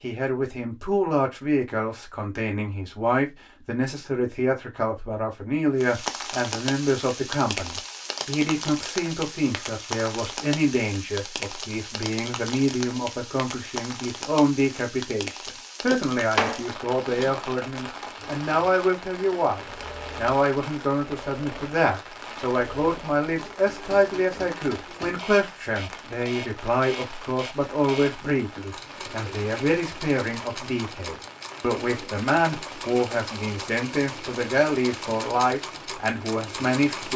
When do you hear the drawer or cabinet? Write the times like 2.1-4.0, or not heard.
15.9-17.4.